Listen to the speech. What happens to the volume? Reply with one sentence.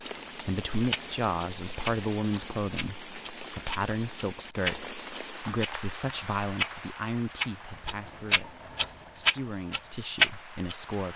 The loudness of the speech goes down.